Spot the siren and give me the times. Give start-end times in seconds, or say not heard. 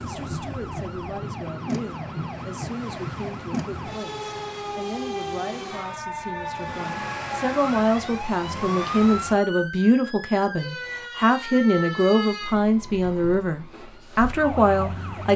0.0-15.3.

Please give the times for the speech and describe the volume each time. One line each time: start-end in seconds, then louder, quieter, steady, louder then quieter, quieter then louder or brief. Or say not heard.
0.0-15.3 louder.